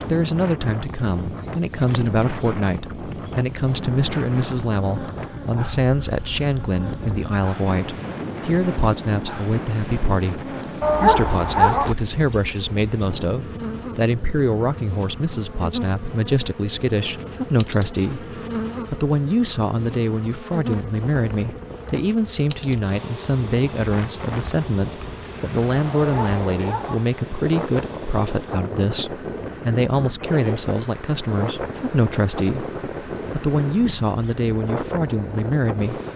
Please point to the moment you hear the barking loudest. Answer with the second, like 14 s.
11 s.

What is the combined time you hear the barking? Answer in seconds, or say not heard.
2 s.